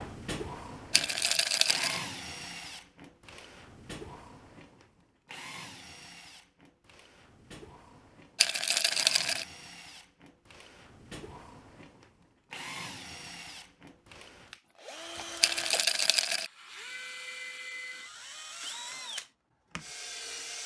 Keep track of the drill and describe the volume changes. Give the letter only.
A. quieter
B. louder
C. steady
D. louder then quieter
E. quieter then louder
E.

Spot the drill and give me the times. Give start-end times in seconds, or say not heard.
0.0-20.6.